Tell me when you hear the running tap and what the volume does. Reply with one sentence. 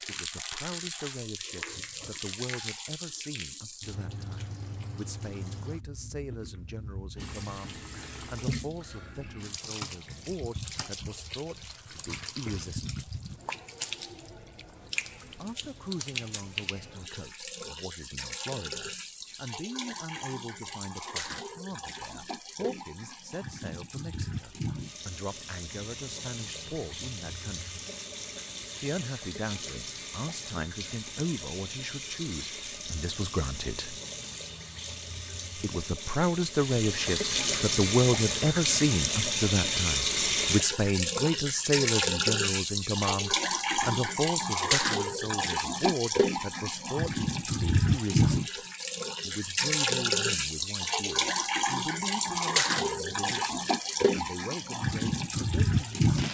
The running tap can be heard from 0.0 to 56.2 s, getting louder.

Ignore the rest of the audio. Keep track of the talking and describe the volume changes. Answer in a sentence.
The loudness of the talking goes up, then down.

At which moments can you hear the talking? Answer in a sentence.
The talking can be heard from 0.0 to 13.1 s, from 15.4 to 27.8 s, from 28.8 to 34.0 s, from 35.5 to 48.5 s and from 49.2 to 56.2 s.